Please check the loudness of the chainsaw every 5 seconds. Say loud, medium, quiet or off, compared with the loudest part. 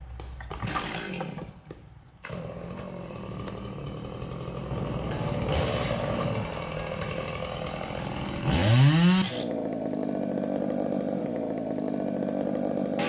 medium, loud, loud.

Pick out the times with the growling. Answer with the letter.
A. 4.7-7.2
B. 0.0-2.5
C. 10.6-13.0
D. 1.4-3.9
A.